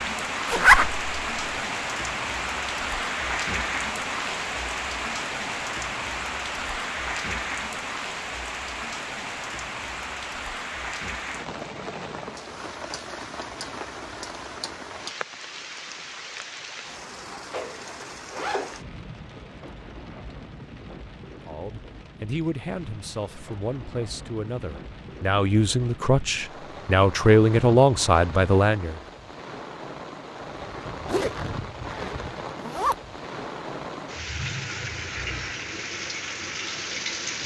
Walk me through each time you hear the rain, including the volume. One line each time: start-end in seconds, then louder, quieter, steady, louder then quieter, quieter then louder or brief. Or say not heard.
0.0-37.4 quieter then louder.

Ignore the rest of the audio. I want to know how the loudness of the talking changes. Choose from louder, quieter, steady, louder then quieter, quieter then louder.
louder.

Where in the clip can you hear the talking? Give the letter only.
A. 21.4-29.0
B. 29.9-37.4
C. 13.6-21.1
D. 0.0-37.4
A.